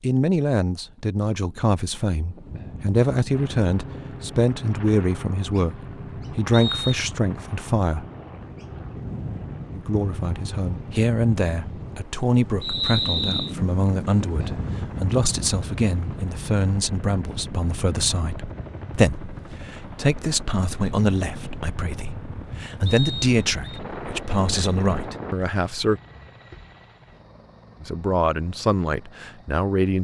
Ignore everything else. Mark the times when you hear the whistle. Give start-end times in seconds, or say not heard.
6.5-7.0, 12.6-13.6, 22.9-23.8.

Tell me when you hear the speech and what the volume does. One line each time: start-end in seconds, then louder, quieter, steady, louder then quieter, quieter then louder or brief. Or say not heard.
0.0-8.1 steady
9.7-26.0 steady
27.8-29.9 brief.